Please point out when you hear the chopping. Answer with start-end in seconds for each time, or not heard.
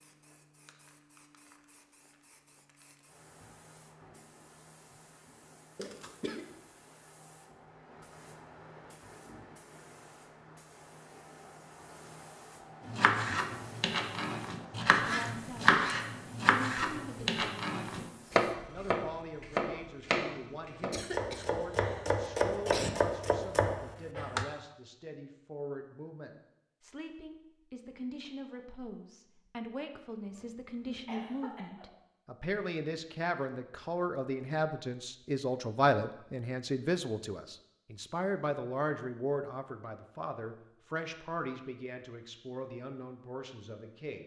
12.8-24.4.